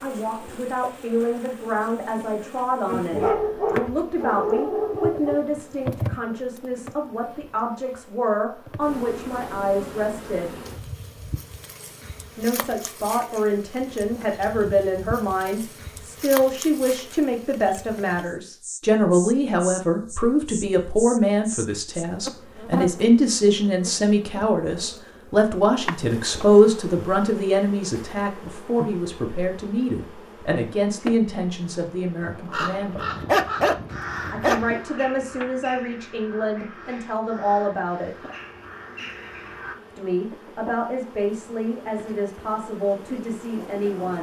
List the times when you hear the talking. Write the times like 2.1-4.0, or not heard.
0.0-10.6, 12.3-33.0, 34.3-38.1, 40.0-44.1.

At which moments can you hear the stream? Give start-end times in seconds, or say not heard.
not heard.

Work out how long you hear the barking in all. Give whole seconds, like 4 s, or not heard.
4 s.